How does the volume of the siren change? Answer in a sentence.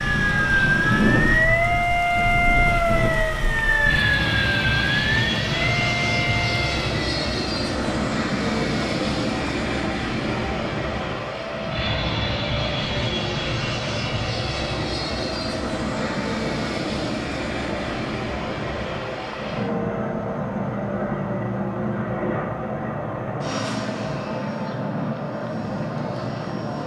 The volume of the siren goes down.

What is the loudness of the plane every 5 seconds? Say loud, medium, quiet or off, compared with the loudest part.
loud, loud, loud, loud, loud, medium.